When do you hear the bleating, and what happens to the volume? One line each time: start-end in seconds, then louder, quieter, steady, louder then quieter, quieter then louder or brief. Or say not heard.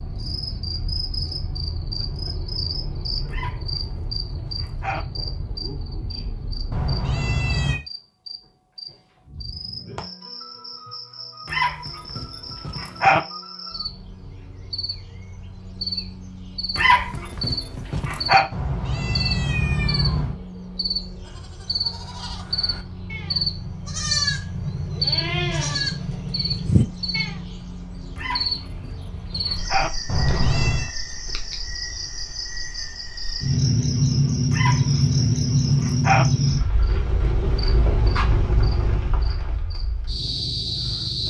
21.2-27.4 louder.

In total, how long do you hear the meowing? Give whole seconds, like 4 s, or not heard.
4 s.